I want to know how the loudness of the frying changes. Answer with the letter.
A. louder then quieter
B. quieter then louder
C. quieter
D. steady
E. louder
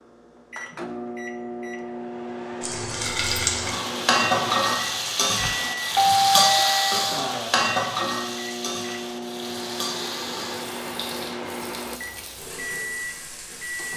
C.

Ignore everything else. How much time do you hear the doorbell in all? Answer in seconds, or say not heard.
2 s.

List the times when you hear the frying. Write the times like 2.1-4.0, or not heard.
2.6-13.9.